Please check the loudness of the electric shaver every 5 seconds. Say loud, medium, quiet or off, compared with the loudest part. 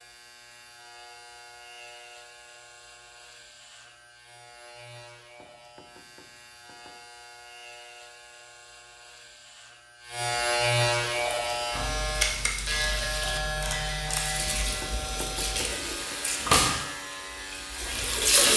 quiet, quiet, loud, medium.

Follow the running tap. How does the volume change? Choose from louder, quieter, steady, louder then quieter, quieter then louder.
louder then quieter.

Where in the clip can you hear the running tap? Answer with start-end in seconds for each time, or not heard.
11.1-18.5.